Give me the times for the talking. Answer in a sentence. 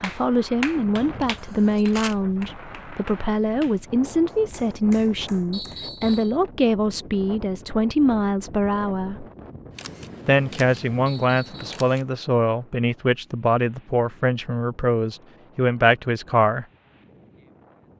The talking can be heard from 0.0 to 9.2 s and from 10.2 to 16.6 s.